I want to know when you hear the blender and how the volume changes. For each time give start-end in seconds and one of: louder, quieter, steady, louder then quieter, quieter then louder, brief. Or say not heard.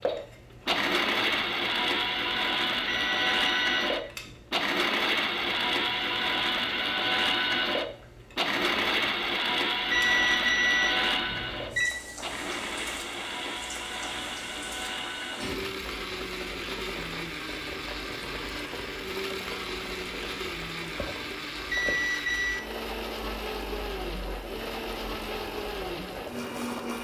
0.0-26.9 quieter.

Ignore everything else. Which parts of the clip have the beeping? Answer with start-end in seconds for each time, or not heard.
2.9-4.3, 9.9-11.9, 21.7-22.6.